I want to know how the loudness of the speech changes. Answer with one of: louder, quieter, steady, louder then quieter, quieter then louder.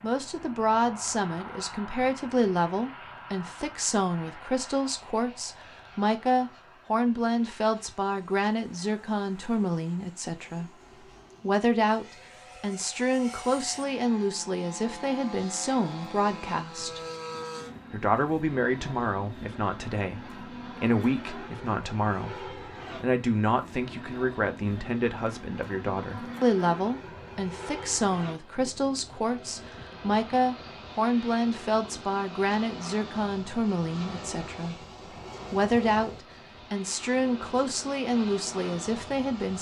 steady.